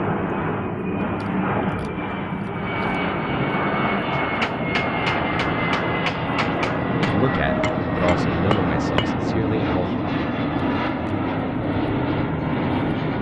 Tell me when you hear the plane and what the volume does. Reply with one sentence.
You can hear the plane from 0.0 to 13.1 s, at a steady volume.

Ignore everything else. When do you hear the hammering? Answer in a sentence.
You can hear the hammering from 4.1 to 9.2 s.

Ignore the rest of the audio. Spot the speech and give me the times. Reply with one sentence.
You can hear the speech from 7.0 to 10.1 s.